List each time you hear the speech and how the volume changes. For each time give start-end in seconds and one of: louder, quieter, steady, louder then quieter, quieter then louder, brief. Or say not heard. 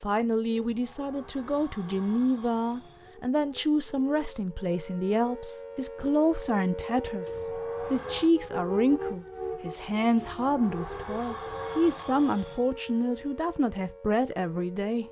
0.0-15.0 steady.